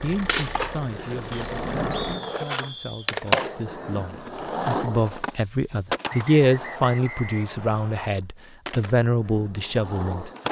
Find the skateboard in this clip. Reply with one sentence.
The skateboard can be heard from 0.1 to 10.4 s.